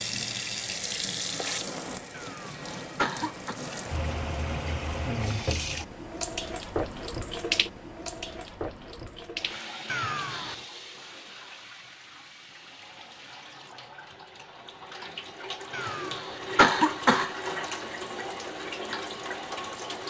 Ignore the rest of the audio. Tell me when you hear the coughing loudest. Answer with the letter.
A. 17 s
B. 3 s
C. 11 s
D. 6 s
A.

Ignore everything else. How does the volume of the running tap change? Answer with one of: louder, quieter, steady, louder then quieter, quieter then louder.
quieter then louder.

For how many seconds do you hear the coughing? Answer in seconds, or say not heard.
4 s.